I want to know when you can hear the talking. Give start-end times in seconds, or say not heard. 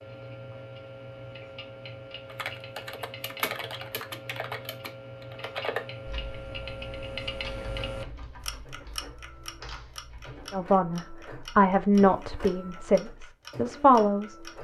10.5-14.3.